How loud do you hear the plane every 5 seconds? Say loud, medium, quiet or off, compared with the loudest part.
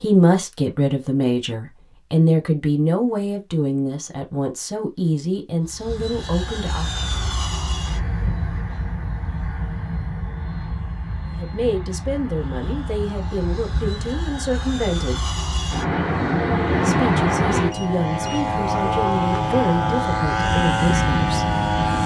off, medium, quiet, loud, loud.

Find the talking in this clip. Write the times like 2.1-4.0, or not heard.
0.0-6.9, 11.3-15.3, 16.8-21.6.